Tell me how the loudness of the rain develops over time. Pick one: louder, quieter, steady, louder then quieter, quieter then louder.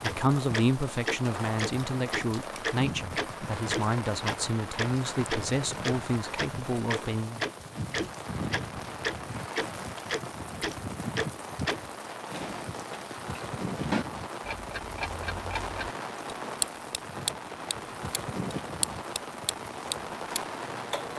steady.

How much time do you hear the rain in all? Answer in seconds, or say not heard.
21 s.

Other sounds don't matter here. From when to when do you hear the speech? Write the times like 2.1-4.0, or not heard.
0.0-7.5.